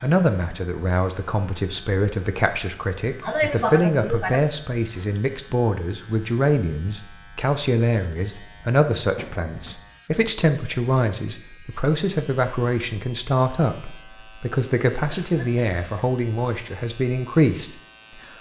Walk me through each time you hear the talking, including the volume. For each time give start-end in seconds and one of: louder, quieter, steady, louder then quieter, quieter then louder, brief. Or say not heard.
0.0-17.8 steady.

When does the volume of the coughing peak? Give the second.
4 s.